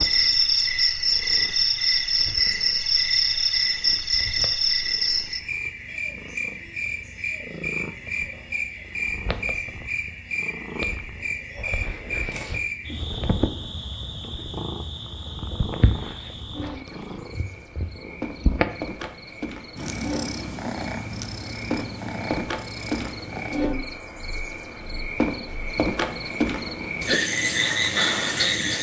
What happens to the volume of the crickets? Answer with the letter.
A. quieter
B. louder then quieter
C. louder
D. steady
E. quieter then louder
E.